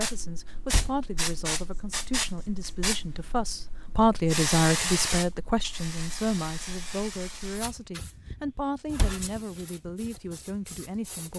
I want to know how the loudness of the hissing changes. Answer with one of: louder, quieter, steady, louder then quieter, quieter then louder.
quieter.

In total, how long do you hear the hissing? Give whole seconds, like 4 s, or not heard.
11 s.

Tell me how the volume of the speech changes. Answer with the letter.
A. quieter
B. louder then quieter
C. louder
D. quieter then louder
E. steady
B.